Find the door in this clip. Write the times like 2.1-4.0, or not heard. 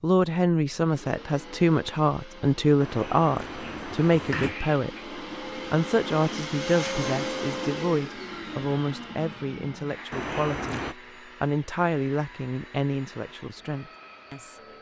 2.8-4.5, 10.1-10.9.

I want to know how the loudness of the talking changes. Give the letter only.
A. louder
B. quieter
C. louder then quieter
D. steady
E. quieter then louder
B.